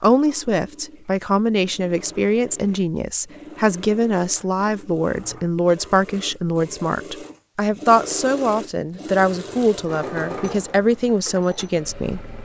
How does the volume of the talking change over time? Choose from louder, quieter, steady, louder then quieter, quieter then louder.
steady.